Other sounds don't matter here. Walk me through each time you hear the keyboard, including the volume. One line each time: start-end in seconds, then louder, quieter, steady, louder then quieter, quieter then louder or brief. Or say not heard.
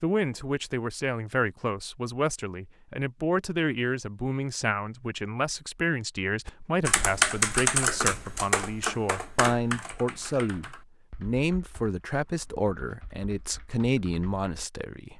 6.5-14.4 quieter.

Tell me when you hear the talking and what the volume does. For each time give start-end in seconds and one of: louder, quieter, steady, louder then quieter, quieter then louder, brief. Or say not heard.
0.0-15.1 steady.